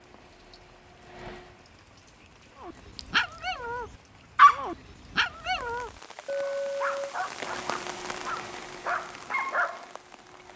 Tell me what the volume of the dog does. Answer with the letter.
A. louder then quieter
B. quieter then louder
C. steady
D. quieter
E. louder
A.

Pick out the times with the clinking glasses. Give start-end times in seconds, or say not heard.
3.0-3.5, 6.2-7.2.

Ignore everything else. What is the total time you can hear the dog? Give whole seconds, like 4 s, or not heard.
7 s.